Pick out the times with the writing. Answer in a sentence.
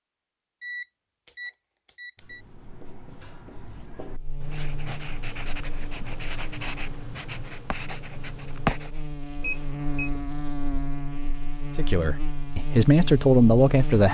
You can hear the writing from 2.1 to 9.0 s.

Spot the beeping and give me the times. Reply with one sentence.
You can hear the beeping from 0.6 to 2.4 s, from 5.5 to 7.1 s and from 9.4 to 10.1 s.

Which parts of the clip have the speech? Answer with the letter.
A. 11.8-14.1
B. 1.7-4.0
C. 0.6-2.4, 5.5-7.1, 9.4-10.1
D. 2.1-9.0
A.